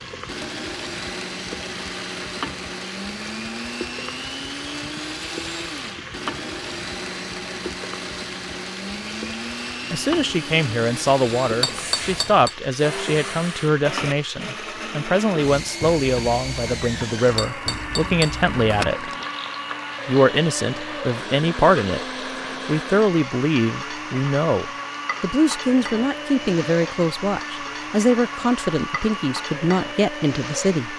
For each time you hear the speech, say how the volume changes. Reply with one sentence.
You can hear the speech from 9.9 to 19.1 s, at a steady volume; briefly from 20.1 to 22.1 s; and from 22.6 to 30.9 s, at a steady volume.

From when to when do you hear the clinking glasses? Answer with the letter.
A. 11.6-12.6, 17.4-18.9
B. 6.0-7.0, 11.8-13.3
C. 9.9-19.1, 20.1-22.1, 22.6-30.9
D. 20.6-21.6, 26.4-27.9
A.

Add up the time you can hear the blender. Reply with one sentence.
The blender can be heard for 31 seconds in total.